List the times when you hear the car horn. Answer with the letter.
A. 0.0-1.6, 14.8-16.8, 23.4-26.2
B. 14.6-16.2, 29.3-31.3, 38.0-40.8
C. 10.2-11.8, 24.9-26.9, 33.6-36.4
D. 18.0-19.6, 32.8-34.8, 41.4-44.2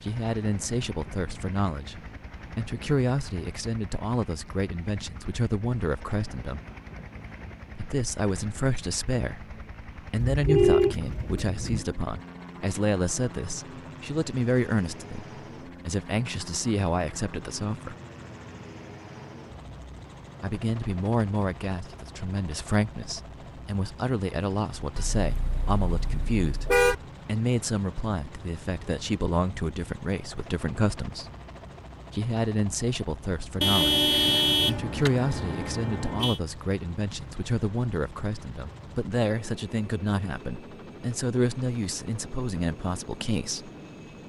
C.